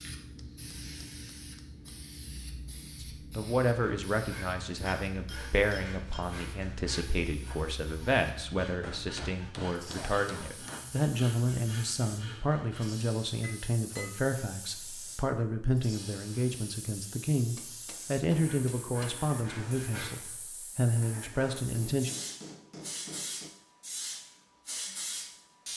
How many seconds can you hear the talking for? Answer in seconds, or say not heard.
19 s.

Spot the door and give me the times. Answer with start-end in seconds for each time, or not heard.
not heard.